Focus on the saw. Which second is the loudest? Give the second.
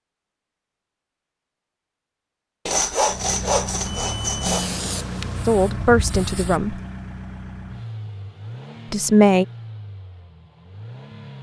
3 s.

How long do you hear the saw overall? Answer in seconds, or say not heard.
2 s.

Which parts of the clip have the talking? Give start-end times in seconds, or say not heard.
5.5-6.8, 8.9-9.4.